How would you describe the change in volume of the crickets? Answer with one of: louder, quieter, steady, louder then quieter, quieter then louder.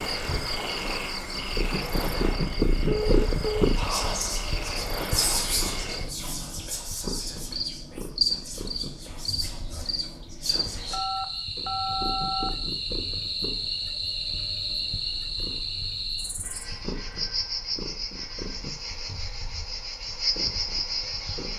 steady.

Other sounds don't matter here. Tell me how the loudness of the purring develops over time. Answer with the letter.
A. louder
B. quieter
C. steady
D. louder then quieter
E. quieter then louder
B.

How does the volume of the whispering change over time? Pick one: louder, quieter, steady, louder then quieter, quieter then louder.
quieter.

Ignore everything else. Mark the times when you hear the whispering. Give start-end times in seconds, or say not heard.
3.8-11.0.